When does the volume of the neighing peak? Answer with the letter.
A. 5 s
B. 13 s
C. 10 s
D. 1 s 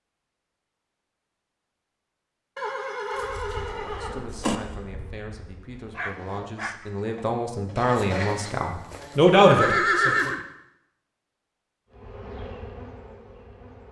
C.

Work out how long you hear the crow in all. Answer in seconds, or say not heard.
not heard.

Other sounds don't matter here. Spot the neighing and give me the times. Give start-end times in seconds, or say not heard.
2.5-4.6, 8.0-10.4.